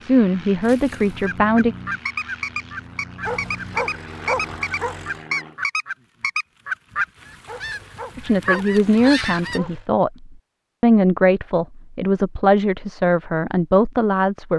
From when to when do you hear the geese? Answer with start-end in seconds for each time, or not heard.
0.6-9.6.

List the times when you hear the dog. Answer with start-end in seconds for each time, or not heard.
3.2-5.2, 7.5-9.8.